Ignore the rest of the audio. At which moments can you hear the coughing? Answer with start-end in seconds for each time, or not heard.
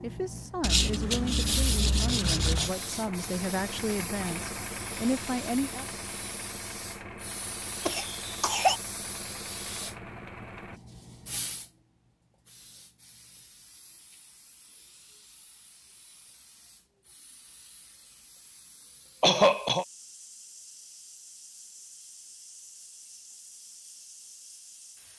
7.8-8.8, 19.2-19.9.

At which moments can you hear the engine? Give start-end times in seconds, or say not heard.
2.0-10.8.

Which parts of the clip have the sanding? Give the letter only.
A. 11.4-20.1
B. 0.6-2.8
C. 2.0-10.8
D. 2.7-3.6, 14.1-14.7
B.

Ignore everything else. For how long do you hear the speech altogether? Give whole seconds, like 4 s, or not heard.
6 s.